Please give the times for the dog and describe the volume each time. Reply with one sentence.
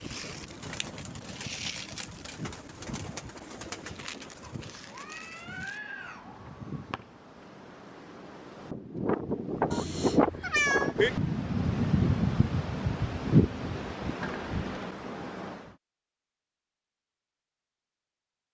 The dog can't be heard in this clip.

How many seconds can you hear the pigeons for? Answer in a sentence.
The pigeons can be heard for 6 seconds in total.